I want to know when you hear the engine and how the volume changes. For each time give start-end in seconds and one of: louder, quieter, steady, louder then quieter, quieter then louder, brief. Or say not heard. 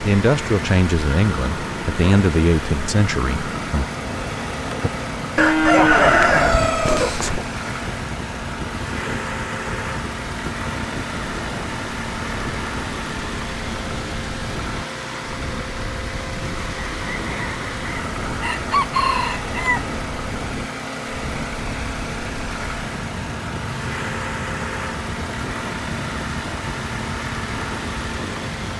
0.0-28.7 steady.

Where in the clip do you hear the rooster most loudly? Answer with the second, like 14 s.
6 s.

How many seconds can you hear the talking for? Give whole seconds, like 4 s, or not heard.
4 s.